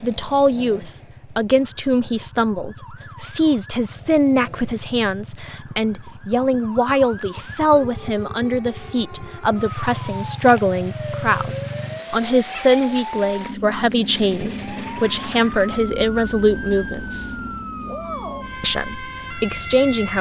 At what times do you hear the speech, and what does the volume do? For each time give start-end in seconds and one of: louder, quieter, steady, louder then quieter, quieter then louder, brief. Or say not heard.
0.0-17.4 steady
18.6-20.1 brief.